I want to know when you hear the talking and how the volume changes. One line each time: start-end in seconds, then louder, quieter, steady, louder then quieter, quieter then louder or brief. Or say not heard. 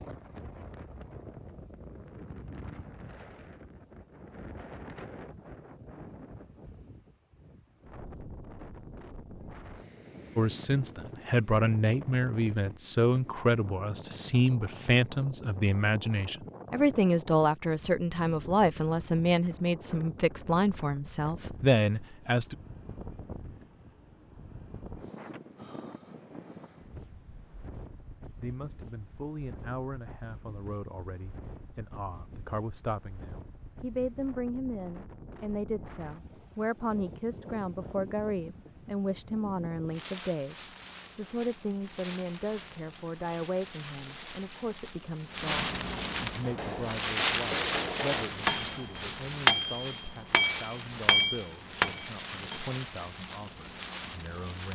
10.3-22.6 steady
28.4-54.7 louder then quieter.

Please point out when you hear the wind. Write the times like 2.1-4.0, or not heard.
0.0-54.7.